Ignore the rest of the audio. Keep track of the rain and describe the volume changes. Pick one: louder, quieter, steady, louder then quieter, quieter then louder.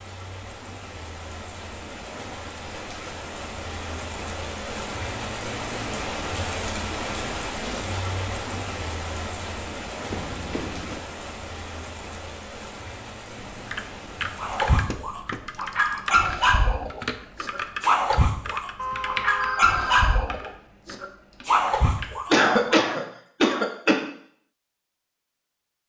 louder then quieter.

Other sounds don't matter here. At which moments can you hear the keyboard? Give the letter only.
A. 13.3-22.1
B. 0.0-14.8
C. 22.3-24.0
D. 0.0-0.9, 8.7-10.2
A.